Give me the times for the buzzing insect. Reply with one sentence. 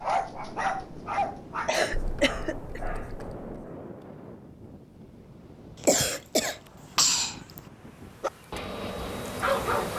The buzzing insect can be heard from 7.7 to 9.9 s.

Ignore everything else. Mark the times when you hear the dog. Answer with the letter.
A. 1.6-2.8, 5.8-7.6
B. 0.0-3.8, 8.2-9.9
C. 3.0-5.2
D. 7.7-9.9
B.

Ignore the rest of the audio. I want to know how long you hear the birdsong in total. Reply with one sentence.
The birdsong can't be heard in this clip.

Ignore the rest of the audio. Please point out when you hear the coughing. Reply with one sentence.
The coughing can be heard from 1.6 to 2.8 s and from 5.8 to 7.6 s.